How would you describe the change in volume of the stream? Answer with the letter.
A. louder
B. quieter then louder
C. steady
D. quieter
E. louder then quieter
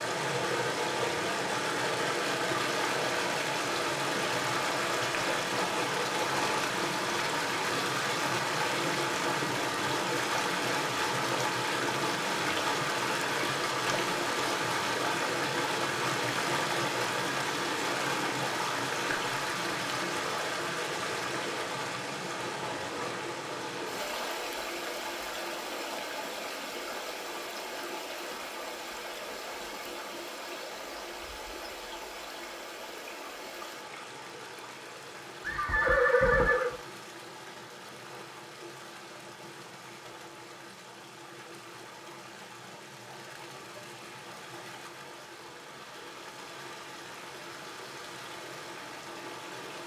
D.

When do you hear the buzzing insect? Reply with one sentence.
The buzzing insect can't be heard in this clip.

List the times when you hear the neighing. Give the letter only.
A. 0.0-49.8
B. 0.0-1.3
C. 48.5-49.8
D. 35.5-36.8
D.